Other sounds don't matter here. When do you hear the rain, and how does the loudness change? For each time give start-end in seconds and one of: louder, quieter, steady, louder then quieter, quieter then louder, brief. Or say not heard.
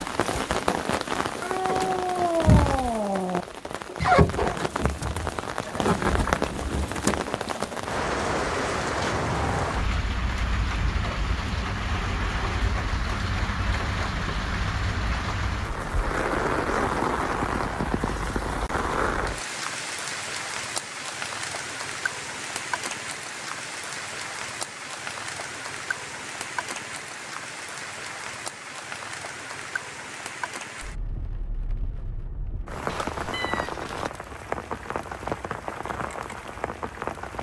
0.0-37.3 quieter.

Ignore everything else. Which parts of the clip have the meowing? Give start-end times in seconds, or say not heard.
1.4-3.5, 32.9-34.1.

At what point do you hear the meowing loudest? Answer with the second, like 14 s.
2 s.